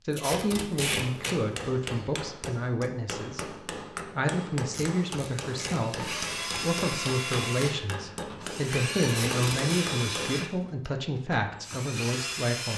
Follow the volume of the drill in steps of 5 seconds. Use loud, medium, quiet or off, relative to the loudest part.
off, loud, loud.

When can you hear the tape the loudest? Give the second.
1 s.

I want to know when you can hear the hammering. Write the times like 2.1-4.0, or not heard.
0.8-10.4.